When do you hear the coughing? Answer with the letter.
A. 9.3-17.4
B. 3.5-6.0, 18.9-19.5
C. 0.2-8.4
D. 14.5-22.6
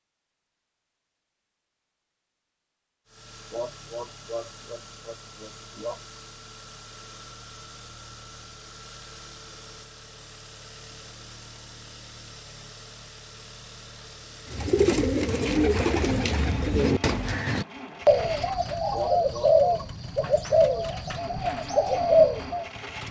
B.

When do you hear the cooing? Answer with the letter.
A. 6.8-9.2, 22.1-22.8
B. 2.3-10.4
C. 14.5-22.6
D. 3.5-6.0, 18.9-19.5
C.